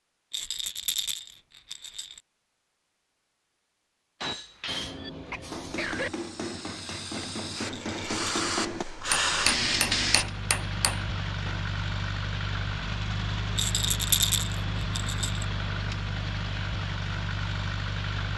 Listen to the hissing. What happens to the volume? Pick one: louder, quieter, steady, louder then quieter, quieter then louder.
louder.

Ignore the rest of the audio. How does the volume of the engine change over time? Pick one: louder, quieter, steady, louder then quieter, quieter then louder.
steady.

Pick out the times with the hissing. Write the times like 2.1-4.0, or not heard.
4.7-10.2.